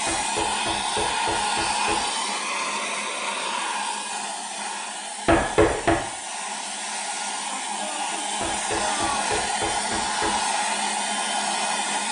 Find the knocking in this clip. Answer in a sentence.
The knocking can be heard from 0.1 to 2.0 s, from 5.2 to 6.0 s and from 8.4 to 10.4 s.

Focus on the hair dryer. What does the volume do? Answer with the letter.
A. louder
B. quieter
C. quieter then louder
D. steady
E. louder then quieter
C.